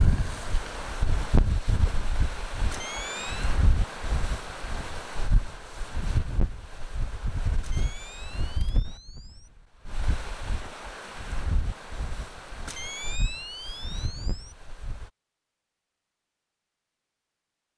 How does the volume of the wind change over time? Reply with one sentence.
The volume of the wind goes down.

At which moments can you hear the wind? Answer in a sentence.
You can hear the wind from 0.0 to 15.1 s.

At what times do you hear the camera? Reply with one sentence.
The camera can be heard from 2.7 to 3.5 s, from 7.6 to 9.5 s and from 12.7 to 14.6 s.